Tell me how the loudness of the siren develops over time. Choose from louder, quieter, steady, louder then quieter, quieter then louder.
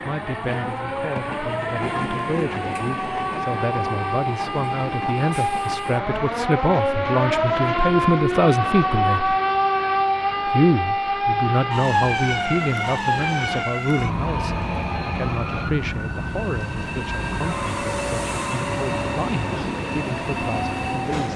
louder then quieter.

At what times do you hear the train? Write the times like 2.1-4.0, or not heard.
0.0-21.3.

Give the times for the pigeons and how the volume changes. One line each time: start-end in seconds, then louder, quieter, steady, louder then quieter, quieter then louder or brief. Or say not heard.
not heard.